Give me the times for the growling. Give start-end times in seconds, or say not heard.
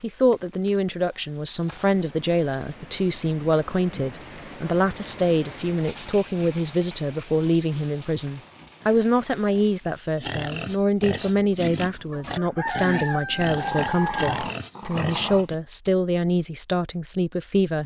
13.4-15.5.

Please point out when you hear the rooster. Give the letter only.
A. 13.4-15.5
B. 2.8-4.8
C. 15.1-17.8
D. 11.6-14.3
D.